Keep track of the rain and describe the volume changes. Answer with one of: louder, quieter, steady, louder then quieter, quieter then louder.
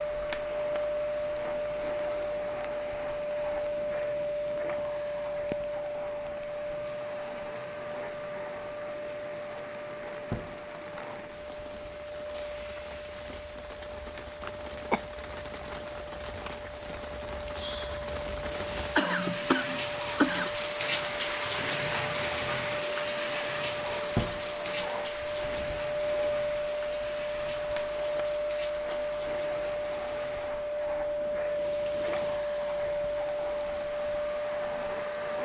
louder then quieter.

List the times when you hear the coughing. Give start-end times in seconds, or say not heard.
14.4-15.1, 18.9-20.5.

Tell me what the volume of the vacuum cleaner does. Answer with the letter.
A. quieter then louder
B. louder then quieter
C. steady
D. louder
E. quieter
A.